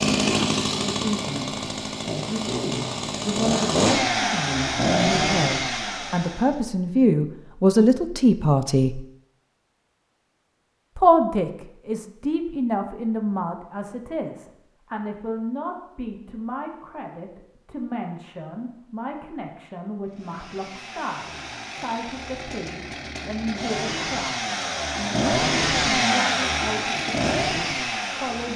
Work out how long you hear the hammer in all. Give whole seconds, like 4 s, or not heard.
not heard.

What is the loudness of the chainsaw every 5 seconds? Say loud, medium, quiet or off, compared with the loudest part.
loud, loud, off, off, medium, loud.